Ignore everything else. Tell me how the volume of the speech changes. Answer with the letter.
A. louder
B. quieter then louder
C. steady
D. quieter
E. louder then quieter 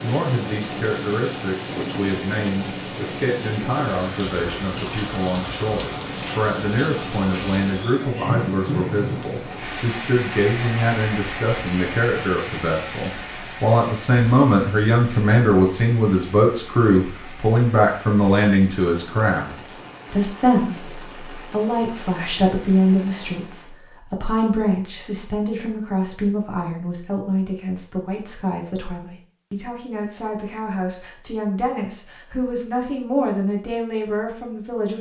E.